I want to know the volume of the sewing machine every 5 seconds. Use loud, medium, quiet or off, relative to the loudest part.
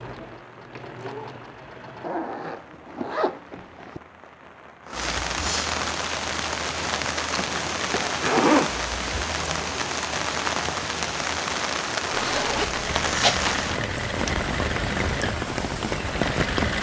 medium, off, loud, loud.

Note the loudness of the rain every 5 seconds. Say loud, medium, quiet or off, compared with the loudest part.
quiet, loud, loud, loud.